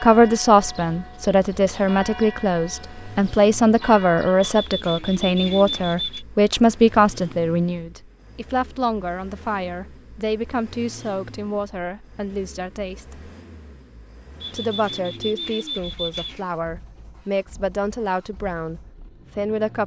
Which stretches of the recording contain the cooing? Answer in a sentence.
You can hear the cooing from 4.4 to 6.2 s and from 14.4 to 16.4 s.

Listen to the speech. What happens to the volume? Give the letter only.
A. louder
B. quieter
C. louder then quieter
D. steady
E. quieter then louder
B.